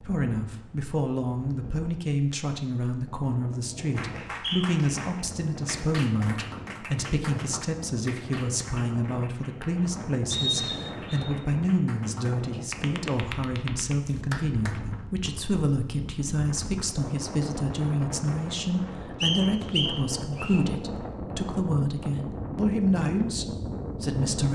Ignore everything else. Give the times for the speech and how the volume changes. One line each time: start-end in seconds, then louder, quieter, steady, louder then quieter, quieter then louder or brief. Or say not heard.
0.0-24.5 steady.